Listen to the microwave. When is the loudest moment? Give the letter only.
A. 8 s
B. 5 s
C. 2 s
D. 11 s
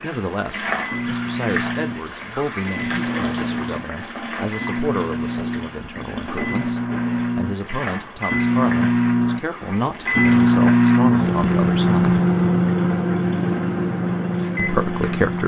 D.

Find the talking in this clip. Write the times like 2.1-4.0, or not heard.
0.0-12.2, 14.6-15.4.